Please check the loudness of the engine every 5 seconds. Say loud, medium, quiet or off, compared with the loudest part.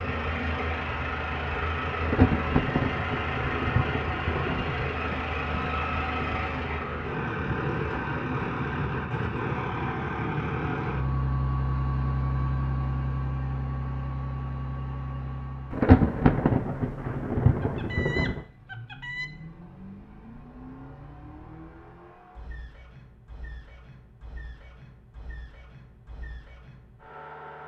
loud, loud, loud, medium, quiet, quiet.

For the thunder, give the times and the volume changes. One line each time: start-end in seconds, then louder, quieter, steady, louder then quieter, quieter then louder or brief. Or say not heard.
2.0-6.4 quieter
15.7-18.4 brief.